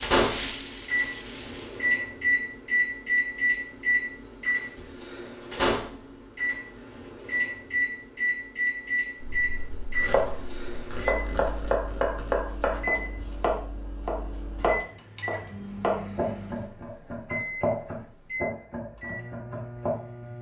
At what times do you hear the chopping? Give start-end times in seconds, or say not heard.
9.2-19.9.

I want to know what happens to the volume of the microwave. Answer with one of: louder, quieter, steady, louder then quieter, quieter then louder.
quieter.